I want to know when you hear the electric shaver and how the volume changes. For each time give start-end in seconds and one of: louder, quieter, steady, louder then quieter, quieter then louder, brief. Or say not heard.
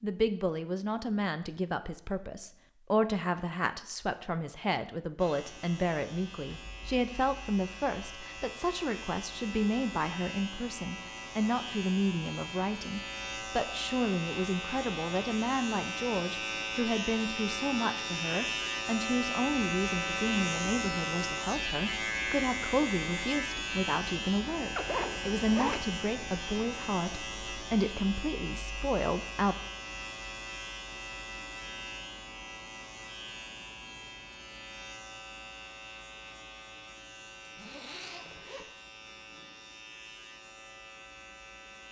5.2-41.8 louder then quieter.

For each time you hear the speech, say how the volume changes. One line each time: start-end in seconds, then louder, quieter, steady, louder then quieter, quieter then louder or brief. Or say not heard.
0.0-29.6 steady.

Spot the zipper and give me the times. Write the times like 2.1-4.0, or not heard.
6.6-7.3, 24.8-25.9, 37.5-39.5.